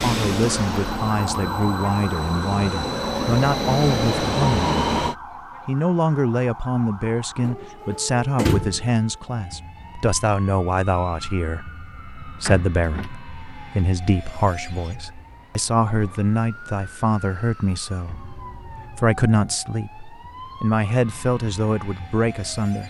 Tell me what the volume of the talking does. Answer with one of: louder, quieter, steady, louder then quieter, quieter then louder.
steady.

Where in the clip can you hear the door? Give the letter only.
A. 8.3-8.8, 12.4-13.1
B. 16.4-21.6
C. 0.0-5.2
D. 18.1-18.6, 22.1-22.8
A.